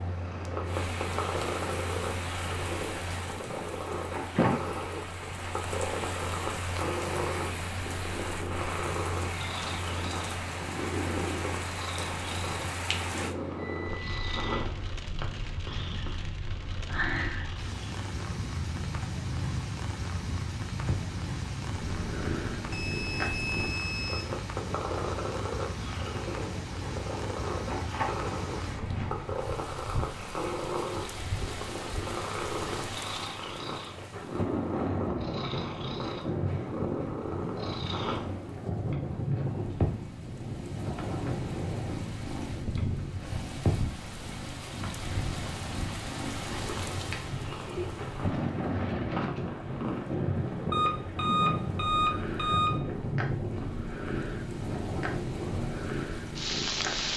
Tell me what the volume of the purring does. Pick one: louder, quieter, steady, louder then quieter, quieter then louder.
steady.